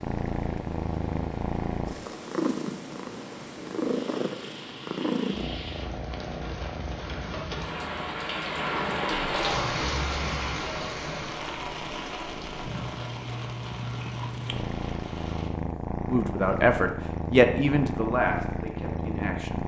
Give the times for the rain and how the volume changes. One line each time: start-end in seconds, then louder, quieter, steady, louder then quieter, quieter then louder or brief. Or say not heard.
0.0-15.5 louder then quieter.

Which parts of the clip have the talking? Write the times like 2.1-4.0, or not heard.
16.1-19.6.